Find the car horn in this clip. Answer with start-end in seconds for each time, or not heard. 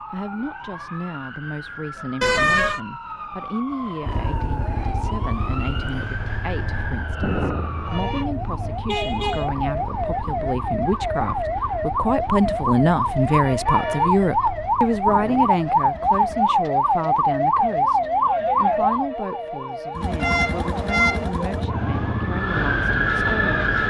2.2-2.8, 8.8-9.5, 20.2-21.2.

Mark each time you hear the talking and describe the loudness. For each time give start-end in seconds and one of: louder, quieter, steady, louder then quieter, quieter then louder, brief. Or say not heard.
0.1-23.6 louder then quieter.